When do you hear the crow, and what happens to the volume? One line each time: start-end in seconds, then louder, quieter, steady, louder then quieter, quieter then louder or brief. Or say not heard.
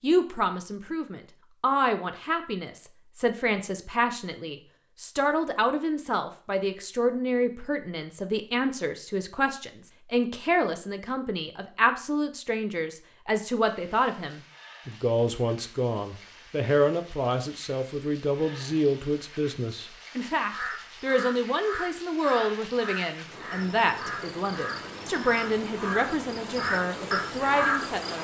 20.4-28.1 louder.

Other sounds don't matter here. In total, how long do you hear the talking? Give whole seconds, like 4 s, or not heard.
28 s.